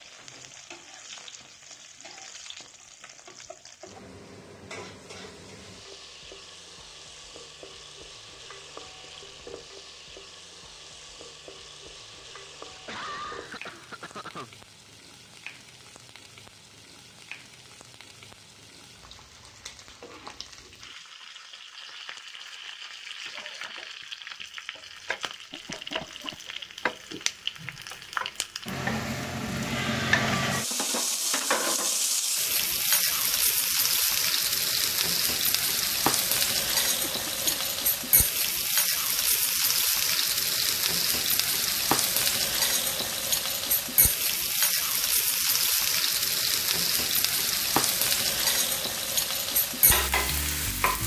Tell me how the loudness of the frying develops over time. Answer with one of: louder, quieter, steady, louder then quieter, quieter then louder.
louder.